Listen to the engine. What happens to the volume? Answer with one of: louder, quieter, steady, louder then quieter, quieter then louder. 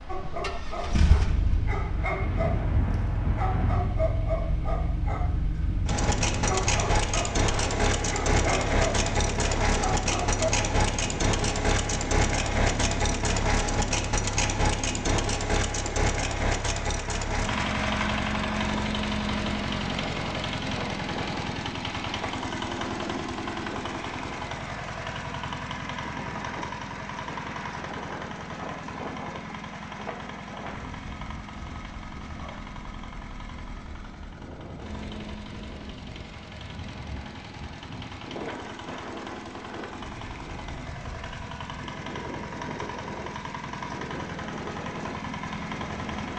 quieter.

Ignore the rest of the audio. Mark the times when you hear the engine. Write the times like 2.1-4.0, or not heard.
0.4-46.3.